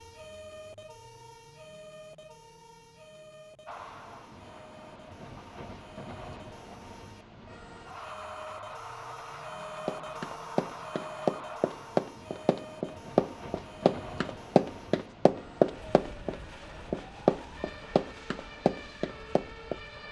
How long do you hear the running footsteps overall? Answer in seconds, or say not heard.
10 s.